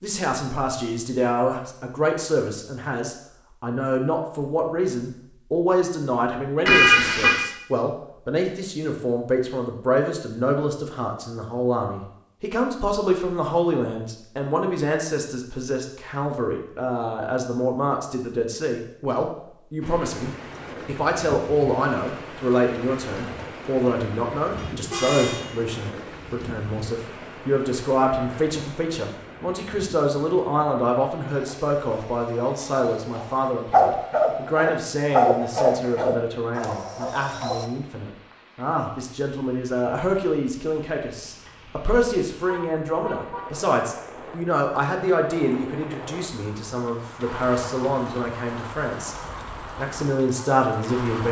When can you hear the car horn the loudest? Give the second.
7 s.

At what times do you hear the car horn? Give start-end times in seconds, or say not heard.
6.7-7.5, 24.6-25.4, 42.5-43.5.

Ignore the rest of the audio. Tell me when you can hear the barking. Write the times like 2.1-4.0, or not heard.
31.2-37.6.